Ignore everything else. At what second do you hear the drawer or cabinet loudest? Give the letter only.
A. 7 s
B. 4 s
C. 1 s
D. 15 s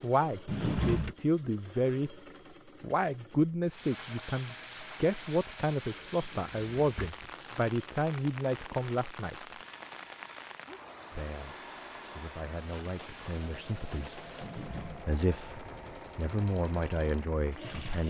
C.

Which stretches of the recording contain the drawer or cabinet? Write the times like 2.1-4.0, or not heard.
0.5-1.1, 6.2-7.3, 14.4-15.1.